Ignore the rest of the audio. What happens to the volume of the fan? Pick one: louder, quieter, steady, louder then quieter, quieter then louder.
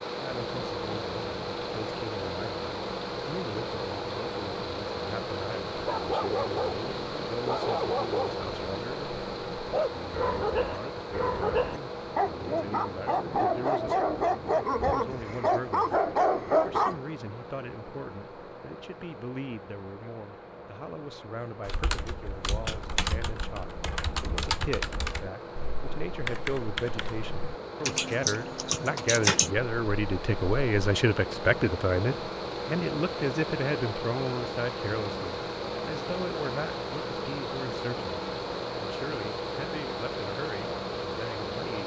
quieter then louder.